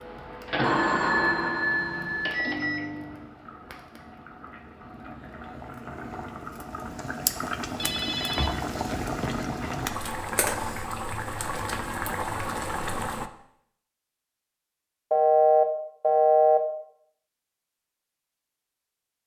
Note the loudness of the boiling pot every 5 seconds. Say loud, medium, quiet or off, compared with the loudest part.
quiet, loud, loud, off.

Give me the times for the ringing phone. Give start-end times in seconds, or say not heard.
0.6-2.4, 7.8-9.9, 15.1-16.6.